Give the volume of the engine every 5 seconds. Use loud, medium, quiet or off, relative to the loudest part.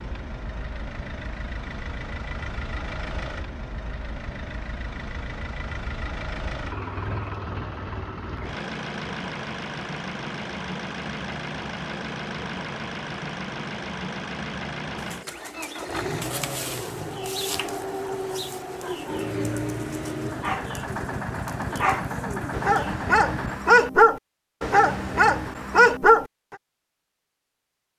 medium, loud, loud, loud, loud, off.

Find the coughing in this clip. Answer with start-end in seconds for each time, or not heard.
not heard.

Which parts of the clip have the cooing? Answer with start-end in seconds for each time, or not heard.
14.9-22.9.